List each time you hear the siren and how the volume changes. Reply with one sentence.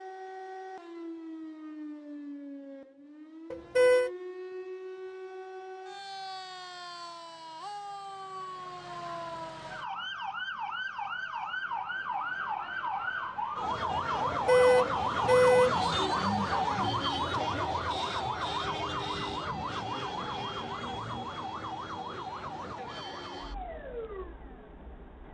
The siren can be heard from 0.0 to 25.2 s, getting louder then quieter.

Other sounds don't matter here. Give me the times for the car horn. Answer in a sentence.
You can hear the car horn from 3.5 to 4.1 s and from 14.2 to 15.8 s.